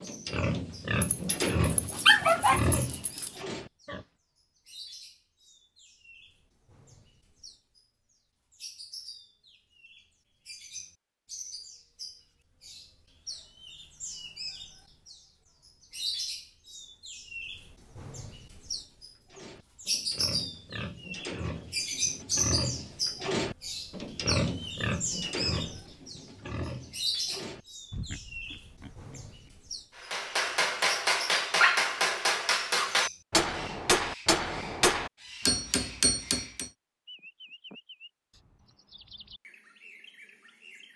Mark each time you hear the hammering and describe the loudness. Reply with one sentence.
The hammering can be heard from 29.9 to 36.7 s, at a steady volume.